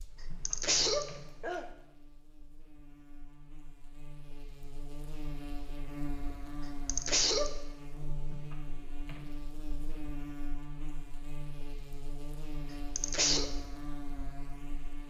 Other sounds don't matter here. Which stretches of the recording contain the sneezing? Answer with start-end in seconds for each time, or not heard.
0.5-1.6, 6.8-7.5, 12.9-13.5.